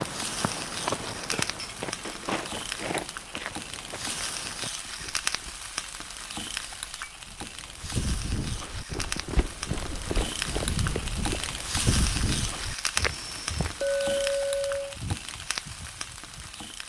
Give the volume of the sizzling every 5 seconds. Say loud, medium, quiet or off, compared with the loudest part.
loud, loud, loud, medium.